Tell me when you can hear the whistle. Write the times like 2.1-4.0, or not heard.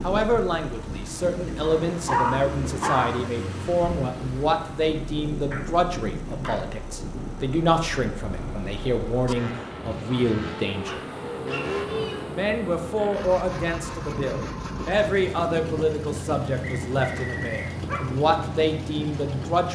16.6-17.8.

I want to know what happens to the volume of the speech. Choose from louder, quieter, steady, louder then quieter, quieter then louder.
steady.